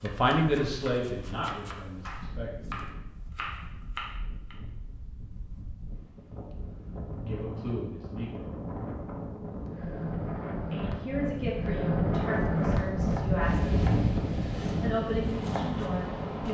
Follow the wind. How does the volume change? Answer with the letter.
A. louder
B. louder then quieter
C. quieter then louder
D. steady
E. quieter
A.